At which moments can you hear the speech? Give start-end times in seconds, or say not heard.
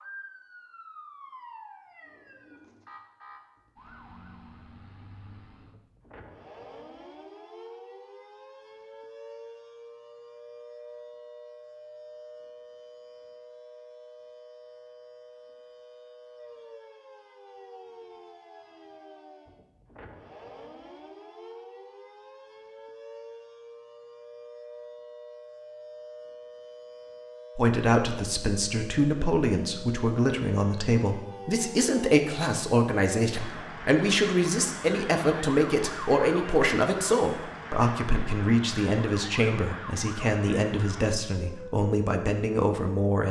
27.6-43.2.